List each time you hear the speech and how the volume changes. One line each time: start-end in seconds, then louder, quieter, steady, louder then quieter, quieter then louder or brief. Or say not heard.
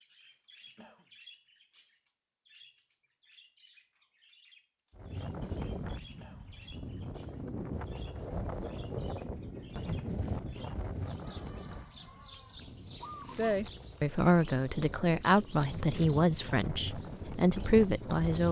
13.3-18.4 quieter then louder.